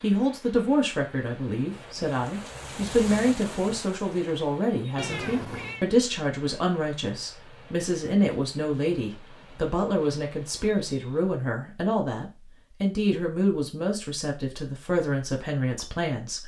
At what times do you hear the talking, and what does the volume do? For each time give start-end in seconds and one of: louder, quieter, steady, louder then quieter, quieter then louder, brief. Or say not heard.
0.0-16.4 steady.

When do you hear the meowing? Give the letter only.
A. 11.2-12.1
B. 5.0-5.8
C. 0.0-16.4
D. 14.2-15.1
B.